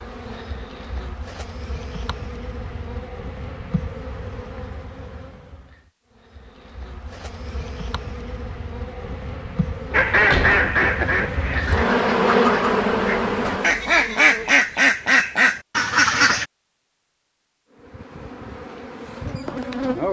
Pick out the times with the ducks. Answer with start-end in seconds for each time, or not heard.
9.9-16.4.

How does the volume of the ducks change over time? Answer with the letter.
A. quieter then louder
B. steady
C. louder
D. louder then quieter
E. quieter
A.